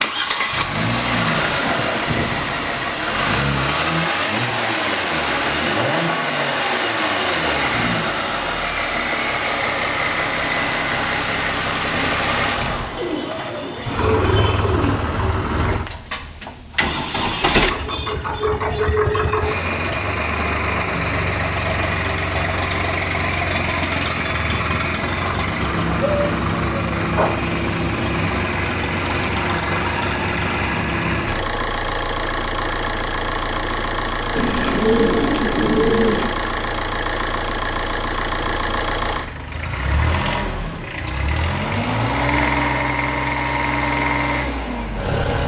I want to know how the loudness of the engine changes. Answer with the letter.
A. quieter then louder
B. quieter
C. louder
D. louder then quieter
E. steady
E.